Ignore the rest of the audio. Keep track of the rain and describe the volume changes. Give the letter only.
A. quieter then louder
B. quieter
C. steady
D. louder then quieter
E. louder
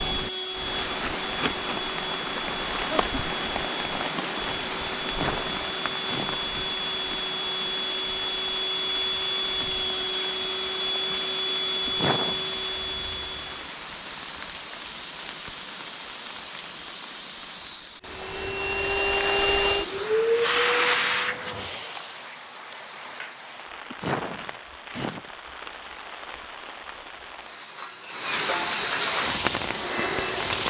A.